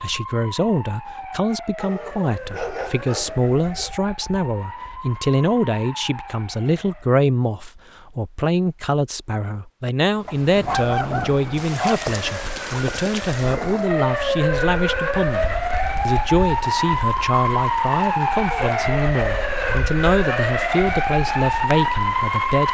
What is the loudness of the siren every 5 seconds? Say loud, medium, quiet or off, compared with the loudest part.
quiet, quiet, medium, loud, loud.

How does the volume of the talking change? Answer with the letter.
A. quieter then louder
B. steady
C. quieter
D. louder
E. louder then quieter
B.